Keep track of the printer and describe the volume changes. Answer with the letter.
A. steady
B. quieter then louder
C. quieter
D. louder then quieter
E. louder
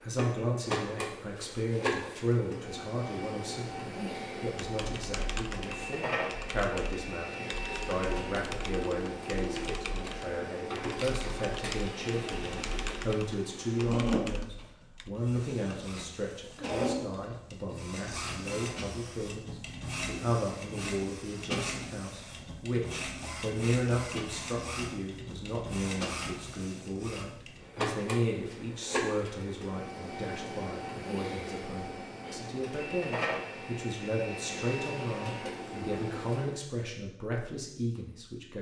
A.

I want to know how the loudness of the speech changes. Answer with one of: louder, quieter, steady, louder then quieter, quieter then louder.
steady.